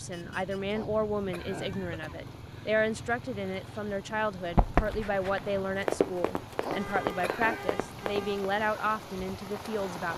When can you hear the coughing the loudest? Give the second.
7 s.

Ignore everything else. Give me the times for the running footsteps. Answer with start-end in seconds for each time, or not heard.
4.5-8.4.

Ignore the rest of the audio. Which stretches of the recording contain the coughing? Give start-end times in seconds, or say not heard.
0.7-2.1, 6.6-7.7.